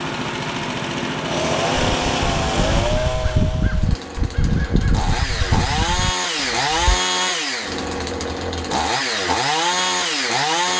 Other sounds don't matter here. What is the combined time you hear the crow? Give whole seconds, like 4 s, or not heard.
5 s.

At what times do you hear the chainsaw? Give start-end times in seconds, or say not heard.
0.0-10.7.